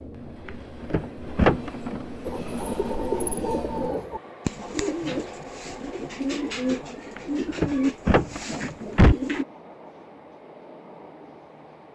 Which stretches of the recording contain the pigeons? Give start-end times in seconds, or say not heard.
2.2-9.4.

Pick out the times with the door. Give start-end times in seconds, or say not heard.
0.5-2.0, 7.2-9.2.